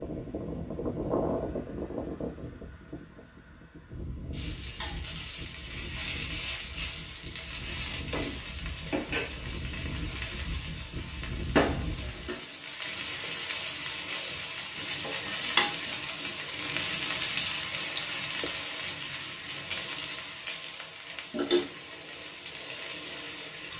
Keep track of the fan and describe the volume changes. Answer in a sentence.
The loudness of the fan goes down, then up.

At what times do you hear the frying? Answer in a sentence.
The frying can be heard from 4.3 to 23.7 s.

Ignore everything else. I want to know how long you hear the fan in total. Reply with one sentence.
The fan can be heard for 12 seconds in total.